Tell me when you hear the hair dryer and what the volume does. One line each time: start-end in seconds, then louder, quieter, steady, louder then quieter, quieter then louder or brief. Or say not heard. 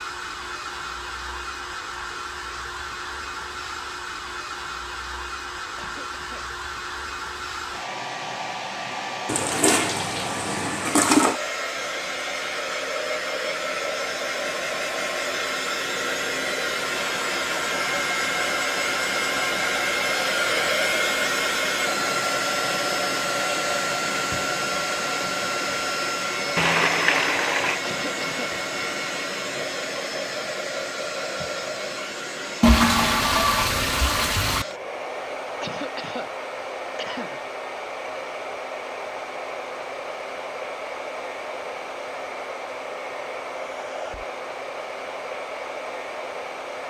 0.0-46.8 louder then quieter.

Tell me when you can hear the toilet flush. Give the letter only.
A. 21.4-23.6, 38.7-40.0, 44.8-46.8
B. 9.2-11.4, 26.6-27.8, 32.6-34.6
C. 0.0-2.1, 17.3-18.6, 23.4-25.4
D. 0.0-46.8
B.